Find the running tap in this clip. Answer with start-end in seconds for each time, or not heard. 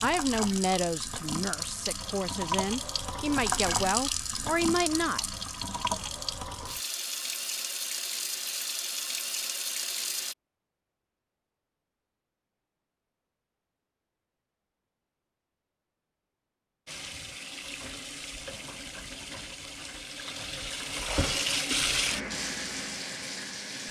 0.0-10.3, 16.9-23.8.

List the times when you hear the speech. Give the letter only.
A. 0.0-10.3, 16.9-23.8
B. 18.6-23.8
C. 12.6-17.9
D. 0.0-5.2
D.